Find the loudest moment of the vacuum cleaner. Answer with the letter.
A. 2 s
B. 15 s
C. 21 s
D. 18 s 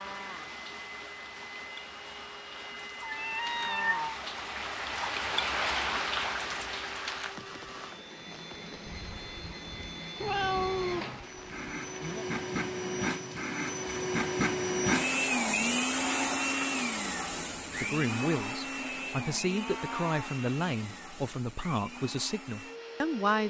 B.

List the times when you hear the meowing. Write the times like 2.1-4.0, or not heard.
3.0-4.0, 10.2-11.2, 19.4-20.4.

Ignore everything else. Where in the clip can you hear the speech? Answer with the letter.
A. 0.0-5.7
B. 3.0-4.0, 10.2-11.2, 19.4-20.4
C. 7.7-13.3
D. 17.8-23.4
D.